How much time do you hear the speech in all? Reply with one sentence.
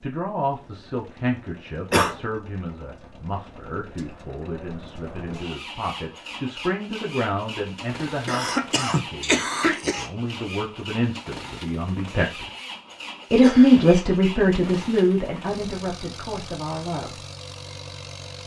You can hear the speech for 16 seconds altogether.